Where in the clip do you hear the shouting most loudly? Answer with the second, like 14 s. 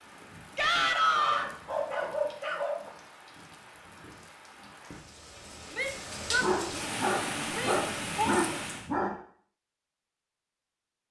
1 s.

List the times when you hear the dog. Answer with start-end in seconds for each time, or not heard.
0.9-2.9, 6.4-9.2.